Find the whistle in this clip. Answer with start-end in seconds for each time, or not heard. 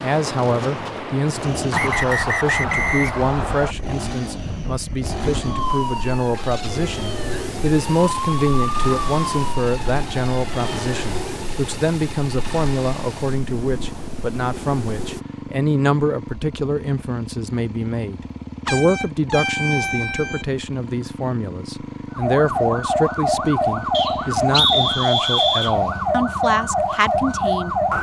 1.7-3.8, 23.9-25.8.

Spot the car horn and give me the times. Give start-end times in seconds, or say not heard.
18.6-20.4.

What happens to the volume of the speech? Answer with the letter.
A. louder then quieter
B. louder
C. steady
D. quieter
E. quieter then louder
C.